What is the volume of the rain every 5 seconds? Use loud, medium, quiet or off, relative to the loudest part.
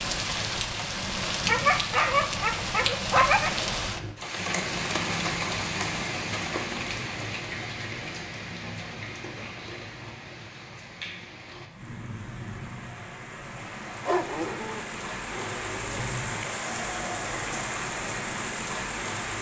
loud, loud, medium, loud.